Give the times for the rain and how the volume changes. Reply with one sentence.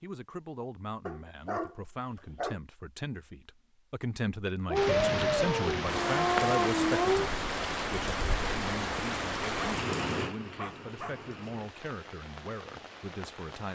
You can hear the rain from 4.8 to 13.7 s, getting quieter.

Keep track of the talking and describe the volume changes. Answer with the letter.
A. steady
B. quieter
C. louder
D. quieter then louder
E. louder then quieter
E.